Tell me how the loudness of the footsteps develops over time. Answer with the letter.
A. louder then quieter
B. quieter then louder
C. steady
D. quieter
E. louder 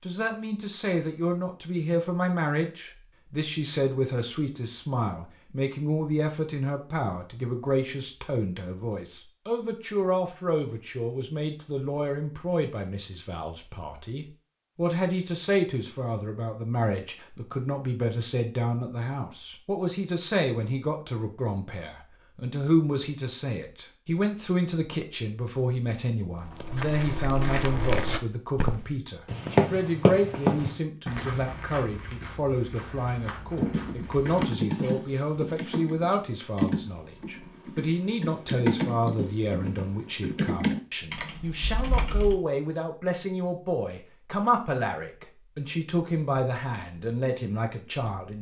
A.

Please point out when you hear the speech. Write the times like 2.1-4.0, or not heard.
0.0-48.3.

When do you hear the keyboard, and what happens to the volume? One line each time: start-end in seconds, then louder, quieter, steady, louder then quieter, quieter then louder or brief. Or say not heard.
33.5-42.4 steady.